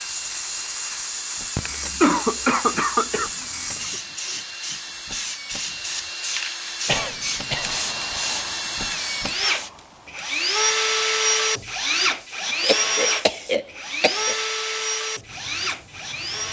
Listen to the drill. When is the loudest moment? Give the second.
11 s.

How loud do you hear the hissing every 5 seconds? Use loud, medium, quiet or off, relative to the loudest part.
loud, loud, quiet, quiet.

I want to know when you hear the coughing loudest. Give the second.
2 s.